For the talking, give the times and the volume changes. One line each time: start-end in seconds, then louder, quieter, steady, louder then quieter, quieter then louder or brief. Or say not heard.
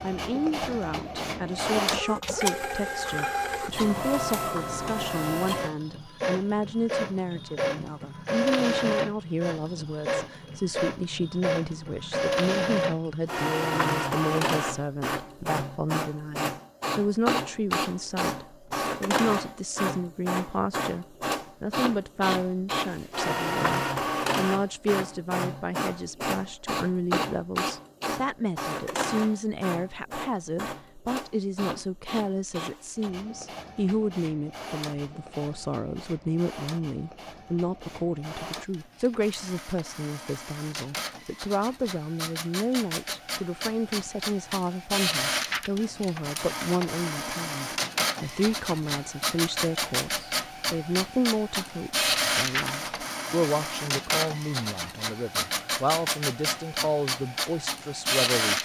0.0-58.6 steady.